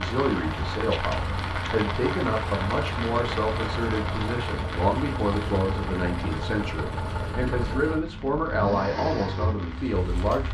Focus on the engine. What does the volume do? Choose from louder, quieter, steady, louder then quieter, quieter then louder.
steady.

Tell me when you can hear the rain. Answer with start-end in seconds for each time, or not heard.
0.0-10.5.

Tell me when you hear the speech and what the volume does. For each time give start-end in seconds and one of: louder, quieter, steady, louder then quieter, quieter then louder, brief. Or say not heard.
0.0-10.5 steady.